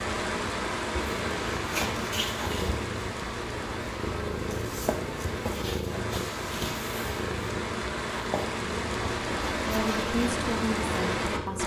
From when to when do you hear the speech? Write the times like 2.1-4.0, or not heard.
9.7-11.6.